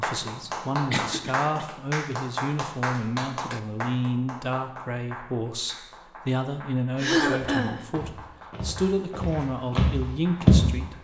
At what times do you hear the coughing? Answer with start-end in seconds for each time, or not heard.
0.9-1.6, 7.0-7.8.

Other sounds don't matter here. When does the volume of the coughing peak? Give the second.
7 s.